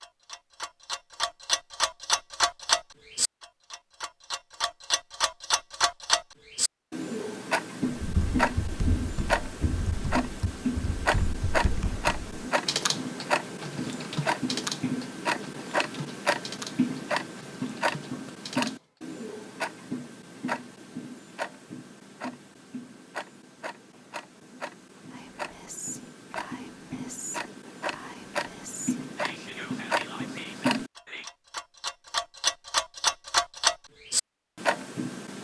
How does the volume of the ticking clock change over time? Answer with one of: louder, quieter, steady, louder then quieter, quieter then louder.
quieter then louder.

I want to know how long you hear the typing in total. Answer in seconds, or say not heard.
11 s.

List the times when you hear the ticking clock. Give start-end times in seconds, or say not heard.
0.0-35.3.